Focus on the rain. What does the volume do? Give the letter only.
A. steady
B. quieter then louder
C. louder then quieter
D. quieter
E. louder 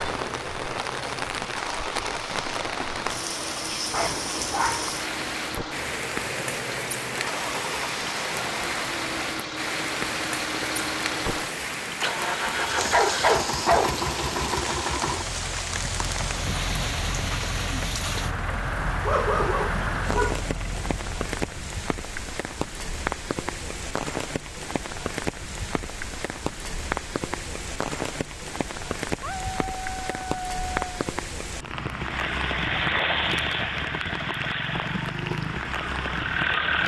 A.